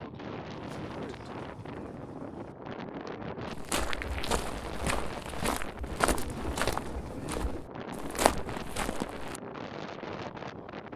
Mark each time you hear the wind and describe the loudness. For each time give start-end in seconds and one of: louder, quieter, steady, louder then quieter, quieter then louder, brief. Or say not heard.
0.0-10.9 steady.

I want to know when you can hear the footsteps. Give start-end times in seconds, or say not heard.
3.5-9.4.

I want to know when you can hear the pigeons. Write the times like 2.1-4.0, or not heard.
0.7-2.5, 6.0-7.7.